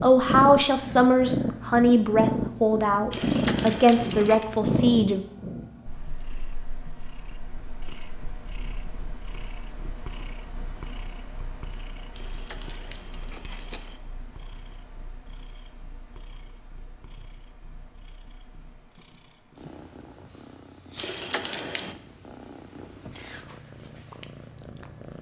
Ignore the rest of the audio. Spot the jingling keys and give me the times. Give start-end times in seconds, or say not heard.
3.1-4.5, 12.2-13.9, 20.9-21.9.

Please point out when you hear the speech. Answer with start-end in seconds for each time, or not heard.
0.0-5.2.